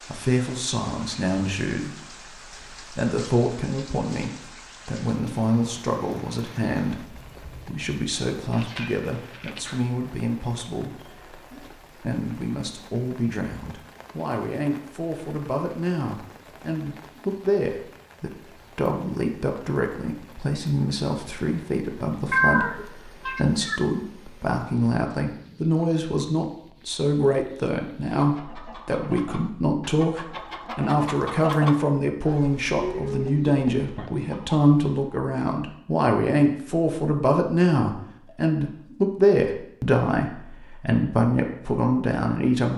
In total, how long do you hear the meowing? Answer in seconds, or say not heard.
4 s.